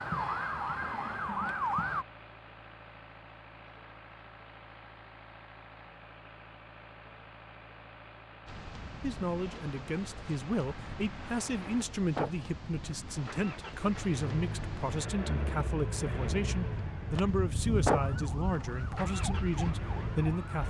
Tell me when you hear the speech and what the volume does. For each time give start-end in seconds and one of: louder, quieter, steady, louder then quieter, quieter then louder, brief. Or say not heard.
9.0-20.6 steady.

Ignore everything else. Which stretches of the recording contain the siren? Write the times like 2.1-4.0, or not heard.
0.0-2.0, 18.1-20.6.